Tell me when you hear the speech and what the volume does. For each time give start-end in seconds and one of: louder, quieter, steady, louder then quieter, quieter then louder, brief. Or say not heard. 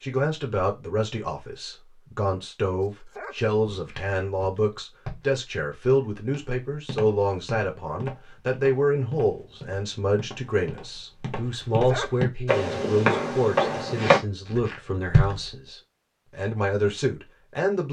0.0-17.8 steady.